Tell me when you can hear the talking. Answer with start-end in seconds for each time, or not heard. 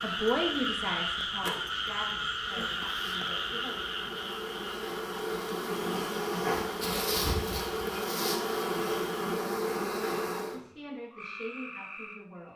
0.0-3.8, 10.4-12.5.